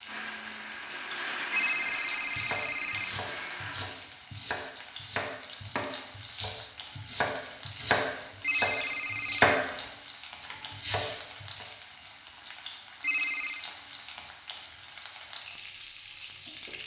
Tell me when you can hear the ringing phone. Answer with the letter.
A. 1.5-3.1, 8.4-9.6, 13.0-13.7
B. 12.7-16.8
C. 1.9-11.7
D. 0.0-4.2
A.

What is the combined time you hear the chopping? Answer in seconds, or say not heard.
10 s.